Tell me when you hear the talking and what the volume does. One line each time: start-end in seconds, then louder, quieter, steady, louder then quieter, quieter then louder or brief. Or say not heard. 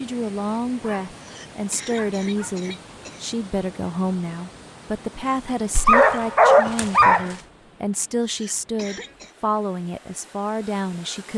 0.0-11.3 steady.